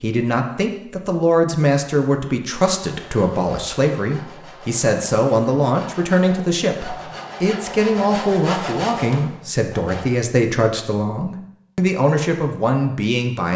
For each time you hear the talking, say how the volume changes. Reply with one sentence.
The talking can be heard from 0.0 to 13.5 s, at a steady volume.